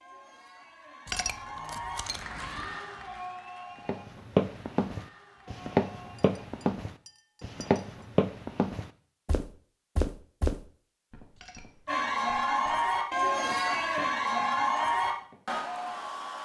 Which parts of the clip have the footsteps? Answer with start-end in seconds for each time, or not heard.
3.9-15.4.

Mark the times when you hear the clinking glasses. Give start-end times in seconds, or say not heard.
1.1-2.8, 6.2-8.1, 11.3-12.1.